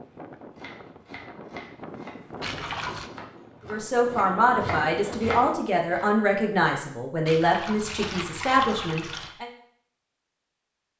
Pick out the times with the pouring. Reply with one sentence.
The pouring can be heard from 2.4 to 3.1 s and from 7.2 to 9.3 s.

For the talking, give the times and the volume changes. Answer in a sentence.
The talking can be heard from 3.6 to 9.5 s, at a steady volume.